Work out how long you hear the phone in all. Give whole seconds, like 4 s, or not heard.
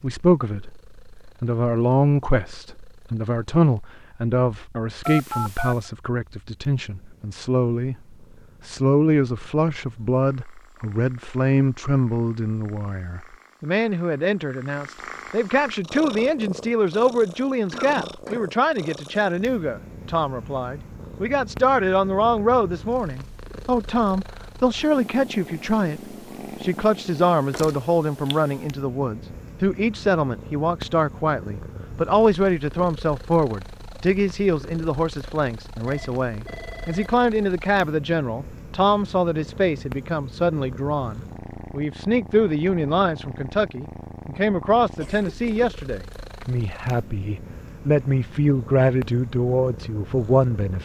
2 s.